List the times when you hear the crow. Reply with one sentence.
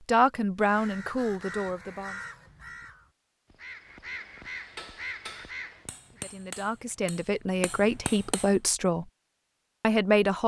The crow can be heard from 0.6 to 6.2 s.